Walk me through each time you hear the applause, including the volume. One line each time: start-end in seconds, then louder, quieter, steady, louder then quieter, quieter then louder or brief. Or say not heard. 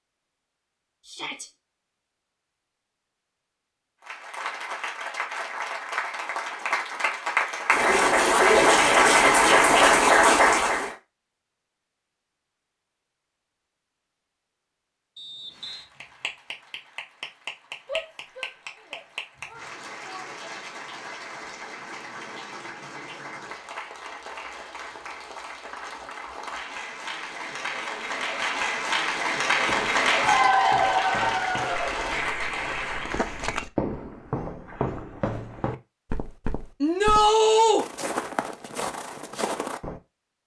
4.0-10.9 louder
15.5-33.5 louder.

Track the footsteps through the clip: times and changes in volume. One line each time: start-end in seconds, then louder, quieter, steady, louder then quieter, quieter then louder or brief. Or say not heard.
29.6-40.0 louder.